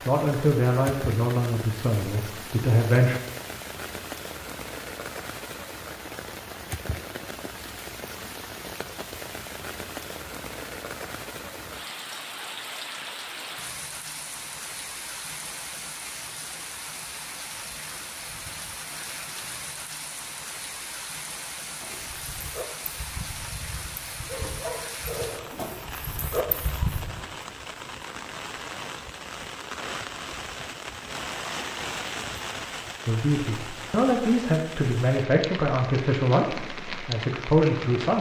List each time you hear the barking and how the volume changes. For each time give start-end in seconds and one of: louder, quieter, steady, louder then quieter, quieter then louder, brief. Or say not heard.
21.8-27.2 louder.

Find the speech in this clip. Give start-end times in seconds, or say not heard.
0.1-3.1, 33.0-38.1.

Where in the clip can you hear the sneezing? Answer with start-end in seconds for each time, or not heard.
not heard.